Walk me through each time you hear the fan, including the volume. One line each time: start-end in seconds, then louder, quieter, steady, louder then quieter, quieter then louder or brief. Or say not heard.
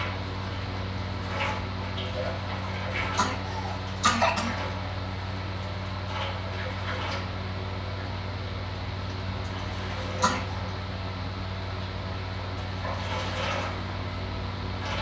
0.0-14.9 steady.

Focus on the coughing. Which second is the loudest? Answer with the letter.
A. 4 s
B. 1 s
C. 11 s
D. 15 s
A.